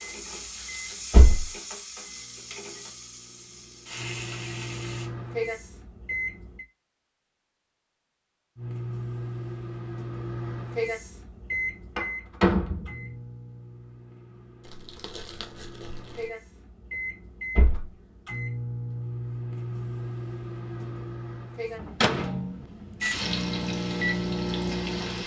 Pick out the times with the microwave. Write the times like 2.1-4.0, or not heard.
0.0-6.7, 8.6-25.2.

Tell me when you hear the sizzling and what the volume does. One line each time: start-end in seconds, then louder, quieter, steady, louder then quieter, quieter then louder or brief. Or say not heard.
0.0-5.1 quieter then louder
23.0-25.2 brief.